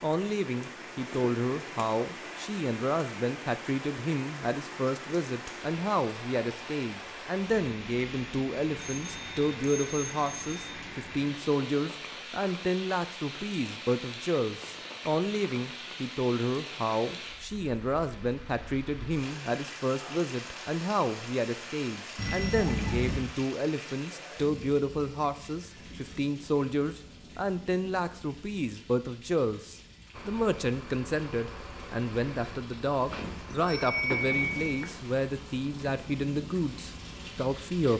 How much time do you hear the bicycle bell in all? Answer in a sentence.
You can hear the bicycle bell for 5 seconds altogether.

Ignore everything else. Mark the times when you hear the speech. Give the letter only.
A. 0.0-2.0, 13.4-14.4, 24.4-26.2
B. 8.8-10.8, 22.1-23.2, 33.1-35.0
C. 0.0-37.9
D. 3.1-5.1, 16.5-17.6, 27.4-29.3
C.